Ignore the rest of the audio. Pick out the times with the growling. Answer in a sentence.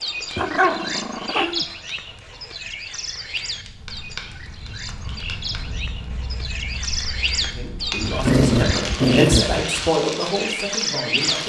The growling can be heard from 0.3 to 1.6 s and from 8.2 to 9.9 s.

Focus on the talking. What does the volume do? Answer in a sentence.
The volume of the talking goes up, then down.